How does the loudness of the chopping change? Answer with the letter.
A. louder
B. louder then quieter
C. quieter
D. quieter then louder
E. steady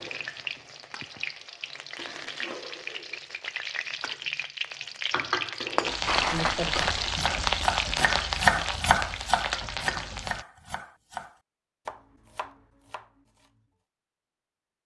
C.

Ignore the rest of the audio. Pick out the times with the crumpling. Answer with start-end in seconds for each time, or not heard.
6.0-7.2.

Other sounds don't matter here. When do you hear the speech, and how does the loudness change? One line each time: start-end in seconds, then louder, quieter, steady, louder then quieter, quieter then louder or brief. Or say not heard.
not heard.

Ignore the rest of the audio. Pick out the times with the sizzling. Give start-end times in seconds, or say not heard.
0.0-10.4.